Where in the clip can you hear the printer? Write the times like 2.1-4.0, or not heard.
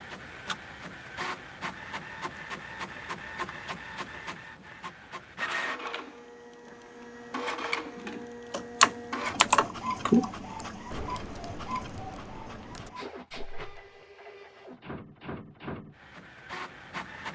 0.0-17.3.